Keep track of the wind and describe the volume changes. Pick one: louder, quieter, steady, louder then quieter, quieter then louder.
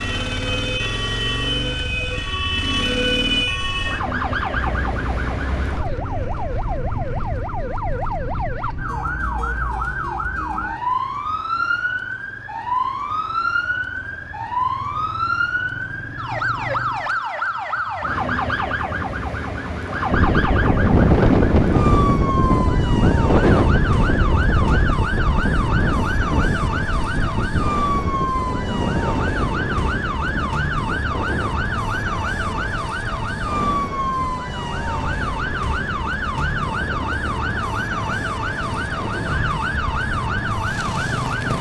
quieter.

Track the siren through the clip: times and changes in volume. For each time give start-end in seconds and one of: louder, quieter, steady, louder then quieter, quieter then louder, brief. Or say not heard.
0.0-41.5 steady.